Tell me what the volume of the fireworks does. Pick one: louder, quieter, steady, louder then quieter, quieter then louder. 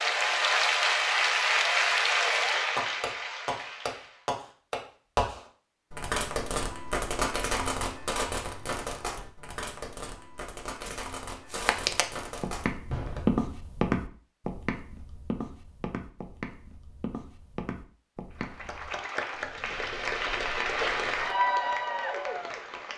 quieter.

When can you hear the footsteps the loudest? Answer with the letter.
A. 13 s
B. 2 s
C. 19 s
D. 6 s
A.